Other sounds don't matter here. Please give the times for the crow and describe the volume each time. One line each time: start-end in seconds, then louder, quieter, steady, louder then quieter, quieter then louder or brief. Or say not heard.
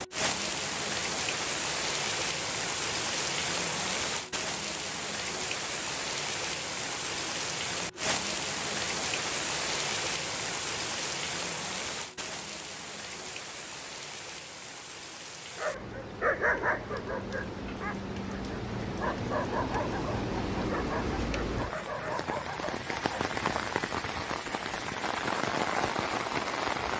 not heard.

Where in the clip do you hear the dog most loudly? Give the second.
16 s.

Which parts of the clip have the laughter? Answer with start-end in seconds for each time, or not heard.
not heard.